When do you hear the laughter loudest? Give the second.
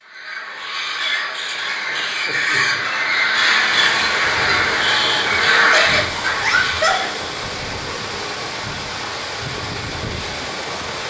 7 s.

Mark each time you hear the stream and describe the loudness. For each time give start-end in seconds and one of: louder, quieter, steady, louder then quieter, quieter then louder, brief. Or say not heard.
3.5-11.0 steady.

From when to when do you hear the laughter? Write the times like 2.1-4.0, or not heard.
1.6-2.9, 5.6-7.0.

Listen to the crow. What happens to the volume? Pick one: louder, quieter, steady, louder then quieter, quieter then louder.
louder.